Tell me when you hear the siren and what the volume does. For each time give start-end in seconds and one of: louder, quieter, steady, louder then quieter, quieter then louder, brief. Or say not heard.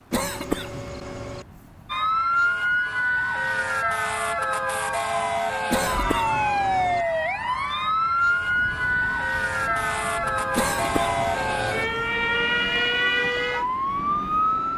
1.9-14.7 steady.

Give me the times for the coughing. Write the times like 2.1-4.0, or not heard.
0.1-1.4, 5.7-7.0, 10.6-11.9.